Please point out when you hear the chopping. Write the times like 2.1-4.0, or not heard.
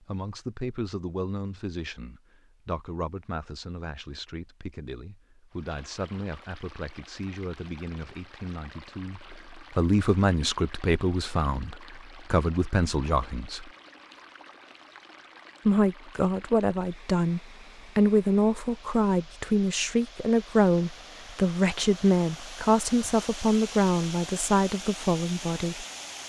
not heard.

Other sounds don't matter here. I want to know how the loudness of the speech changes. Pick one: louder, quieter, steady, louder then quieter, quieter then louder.
louder.